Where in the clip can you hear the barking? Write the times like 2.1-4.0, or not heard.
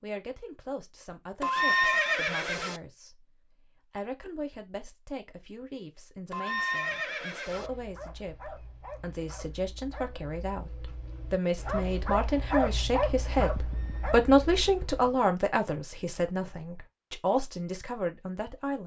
7.5-15.0.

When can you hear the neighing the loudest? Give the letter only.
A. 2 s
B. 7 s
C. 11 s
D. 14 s
A.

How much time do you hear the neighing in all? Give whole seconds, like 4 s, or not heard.
5 s.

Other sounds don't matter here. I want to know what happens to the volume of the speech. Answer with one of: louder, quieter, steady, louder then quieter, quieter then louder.
louder then quieter.